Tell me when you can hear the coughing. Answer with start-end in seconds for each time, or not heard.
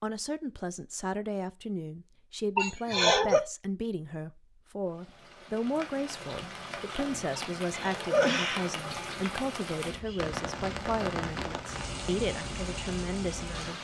2.5-3.4, 7.3-9.1.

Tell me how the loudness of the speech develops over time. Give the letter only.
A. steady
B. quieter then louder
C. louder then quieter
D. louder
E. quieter
A.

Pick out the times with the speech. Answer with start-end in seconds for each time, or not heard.
0.0-13.7.